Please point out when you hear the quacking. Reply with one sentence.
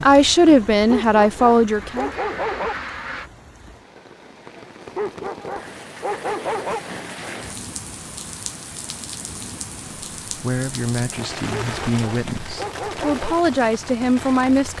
The quacking can be heard from 1.6 to 3.3 s.